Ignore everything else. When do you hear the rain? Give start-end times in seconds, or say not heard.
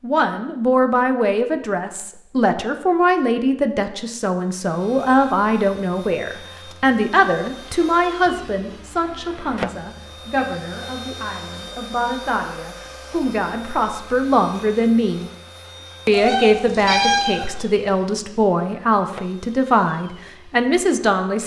not heard.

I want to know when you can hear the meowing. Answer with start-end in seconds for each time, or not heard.
16.1-17.6.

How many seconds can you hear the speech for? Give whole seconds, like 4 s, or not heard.
21 s.